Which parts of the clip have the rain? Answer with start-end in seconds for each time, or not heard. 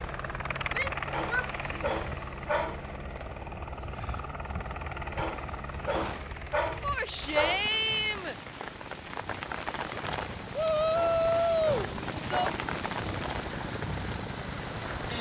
7.2-15.1.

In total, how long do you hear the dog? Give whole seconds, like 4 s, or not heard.
6 s.